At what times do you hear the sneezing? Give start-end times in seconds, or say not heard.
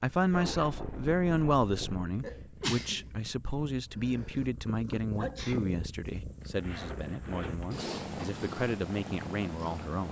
2.2-3.0, 5.2-5.8.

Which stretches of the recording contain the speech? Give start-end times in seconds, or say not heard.
0.0-10.0.